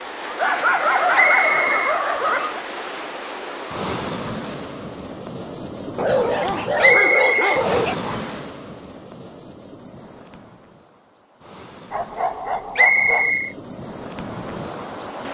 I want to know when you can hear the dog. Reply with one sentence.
You can hear the dog from 0.3 to 2.6 s, from 6.0 to 8.0 s and from 11.9 to 13.3 s.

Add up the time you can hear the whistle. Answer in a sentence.
The whistle can be heard for 3 seconds in total.